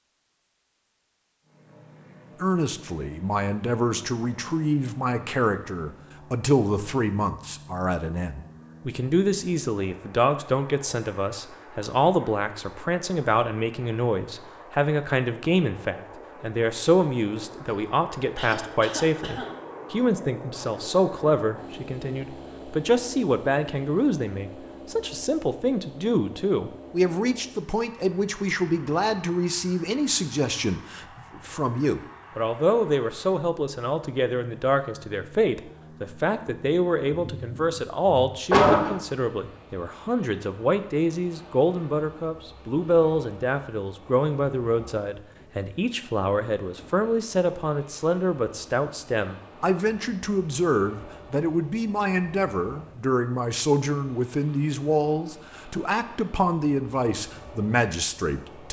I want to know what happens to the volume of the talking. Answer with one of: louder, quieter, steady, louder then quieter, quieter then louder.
steady.